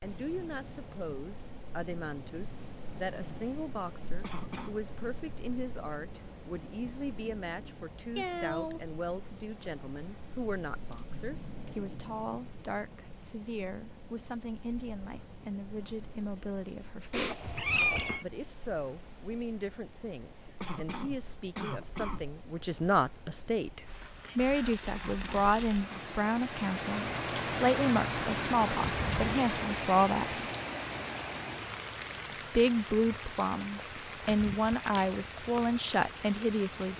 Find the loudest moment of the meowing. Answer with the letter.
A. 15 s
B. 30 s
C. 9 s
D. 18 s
D.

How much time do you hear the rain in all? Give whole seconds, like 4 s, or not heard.
37 s.